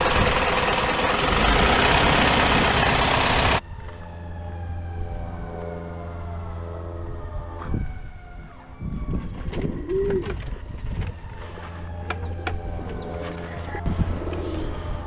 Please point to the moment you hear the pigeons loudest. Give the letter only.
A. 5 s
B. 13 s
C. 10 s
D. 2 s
C.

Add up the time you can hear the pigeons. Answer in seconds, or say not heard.
6 s.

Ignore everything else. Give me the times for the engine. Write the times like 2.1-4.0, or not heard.
0.0-3.6.